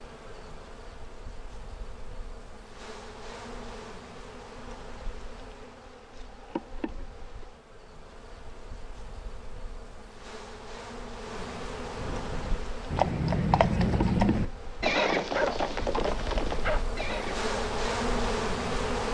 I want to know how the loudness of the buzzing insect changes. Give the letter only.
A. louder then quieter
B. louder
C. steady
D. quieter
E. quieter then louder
B.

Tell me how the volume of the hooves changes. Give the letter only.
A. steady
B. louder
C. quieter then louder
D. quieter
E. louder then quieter
E.